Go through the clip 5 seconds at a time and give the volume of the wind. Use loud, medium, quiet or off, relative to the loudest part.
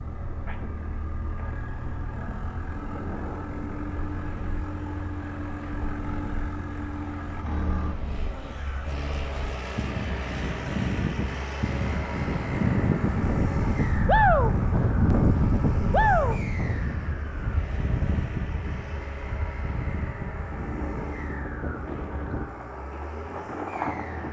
quiet, quiet, loud, loud, medium.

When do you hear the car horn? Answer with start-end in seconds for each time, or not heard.
not heard.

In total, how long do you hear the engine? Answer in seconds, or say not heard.
24 s.